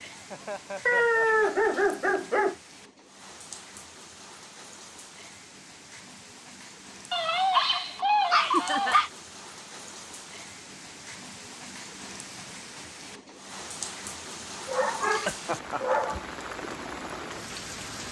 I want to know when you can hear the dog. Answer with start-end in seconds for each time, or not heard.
0.8-2.5, 7.1-9.1, 14.4-16.2.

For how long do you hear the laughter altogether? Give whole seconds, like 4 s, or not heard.
2 s.